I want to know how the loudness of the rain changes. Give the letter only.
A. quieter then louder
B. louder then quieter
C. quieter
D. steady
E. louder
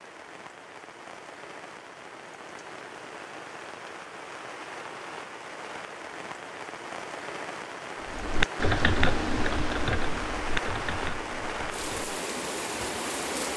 E.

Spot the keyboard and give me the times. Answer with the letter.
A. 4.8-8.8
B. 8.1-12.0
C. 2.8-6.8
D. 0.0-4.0
B.